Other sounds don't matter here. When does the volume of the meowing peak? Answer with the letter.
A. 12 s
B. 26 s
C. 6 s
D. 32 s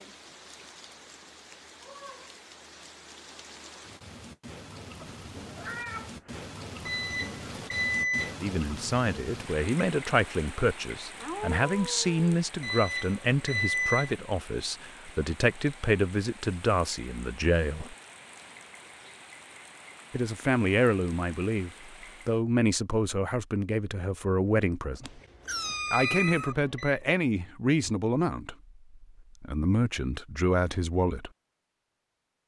B.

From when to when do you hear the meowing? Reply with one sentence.
You can hear the meowing from 5.0 to 6.5 s, from 11.2 to 12.3 s and from 25.1 to 26.6 s.